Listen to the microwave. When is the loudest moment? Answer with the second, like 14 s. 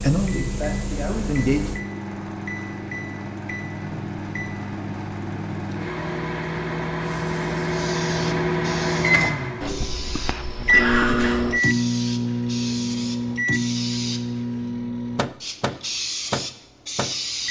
11 s.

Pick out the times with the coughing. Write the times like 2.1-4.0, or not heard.
10.7-11.4.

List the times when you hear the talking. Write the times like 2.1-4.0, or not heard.
0.0-1.6.